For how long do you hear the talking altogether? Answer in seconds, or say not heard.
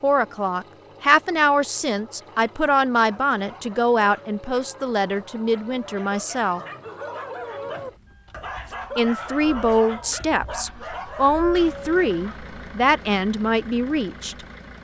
12 s.